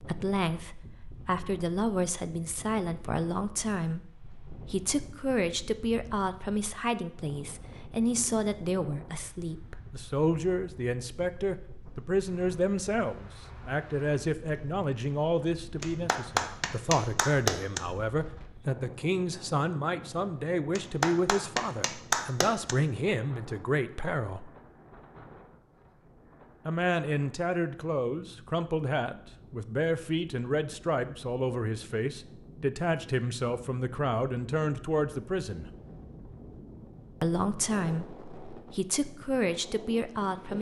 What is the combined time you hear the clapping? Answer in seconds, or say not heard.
4 s.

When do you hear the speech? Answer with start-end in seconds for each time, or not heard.
0.0-24.5, 26.6-35.6, 37.2-40.5.